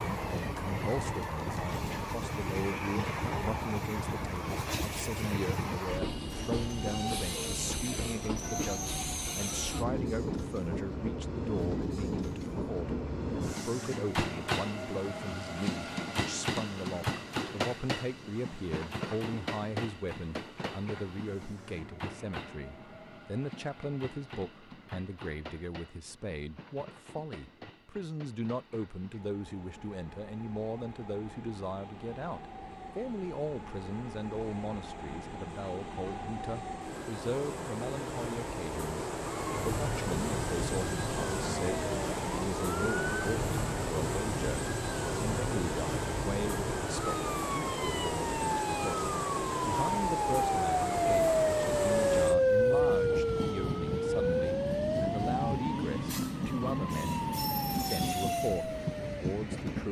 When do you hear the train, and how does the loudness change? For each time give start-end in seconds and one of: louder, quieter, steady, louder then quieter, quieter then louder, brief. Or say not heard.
0.0-59.8 quieter then louder.